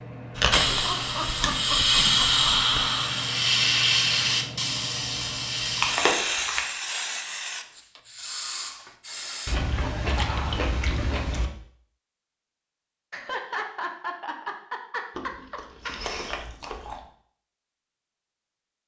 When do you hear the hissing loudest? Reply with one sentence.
The volume of the hissing peaks at 2 seconds.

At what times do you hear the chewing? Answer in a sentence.
You can hear the chewing from 0.3 to 2.9 s, from 5.8 to 6.7 s, from 9.4 to 11.5 s and from 15.2 to 17.1 s.